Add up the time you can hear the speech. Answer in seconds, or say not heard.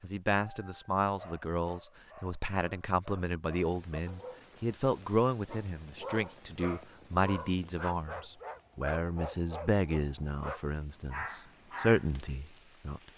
13 s.